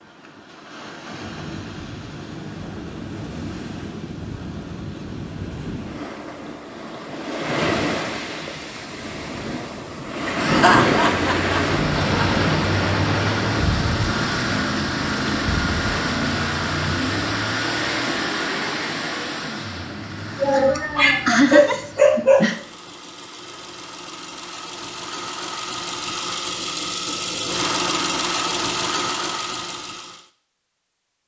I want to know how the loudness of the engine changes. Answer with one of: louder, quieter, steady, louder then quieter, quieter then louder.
quieter then louder.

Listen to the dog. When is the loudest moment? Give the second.
22 s.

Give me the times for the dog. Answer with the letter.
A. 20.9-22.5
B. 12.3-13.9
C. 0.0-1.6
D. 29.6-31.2
A.